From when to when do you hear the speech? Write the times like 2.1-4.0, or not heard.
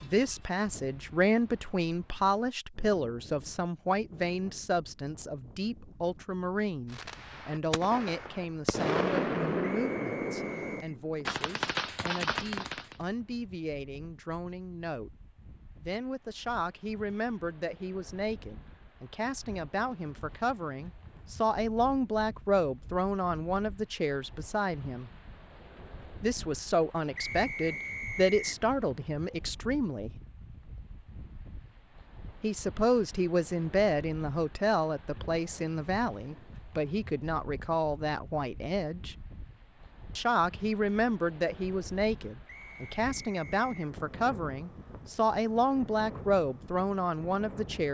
0.0-15.1, 15.8-25.1, 26.2-30.1, 32.4-39.1, 40.1-47.8.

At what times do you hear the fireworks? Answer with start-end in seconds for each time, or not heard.
6.9-12.9.